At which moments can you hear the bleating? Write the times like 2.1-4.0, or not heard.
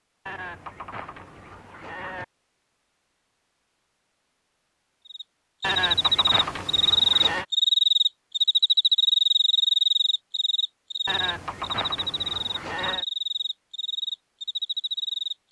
0.2-2.2, 5.6-7.5, 11.1-13.1.